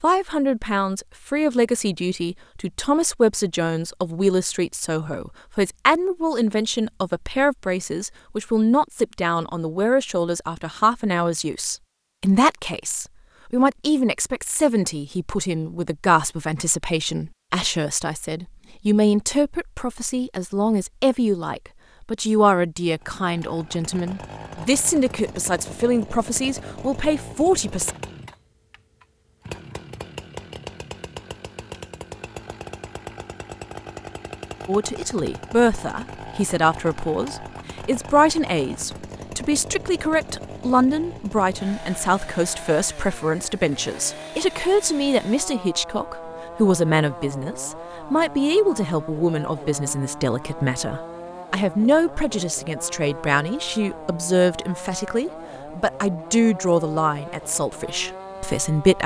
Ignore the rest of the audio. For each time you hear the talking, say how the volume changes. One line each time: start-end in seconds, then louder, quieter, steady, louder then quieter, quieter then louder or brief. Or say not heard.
0.0-27.9 steady
34.6-59.0 steady.